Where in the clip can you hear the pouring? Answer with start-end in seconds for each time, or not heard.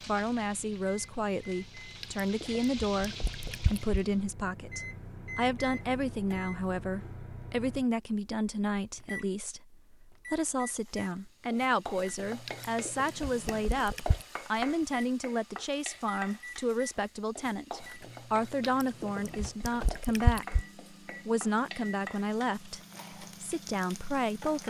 2.0-4.0, 12.4-14.2, 18.6-20.6.